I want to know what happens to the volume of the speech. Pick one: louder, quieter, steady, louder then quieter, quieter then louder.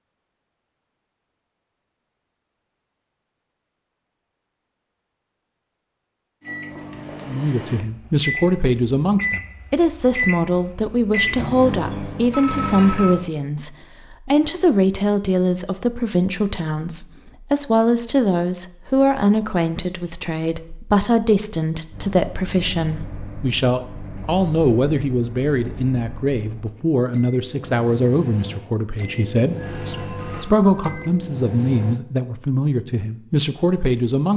steady.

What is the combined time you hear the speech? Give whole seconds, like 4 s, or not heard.
27 s.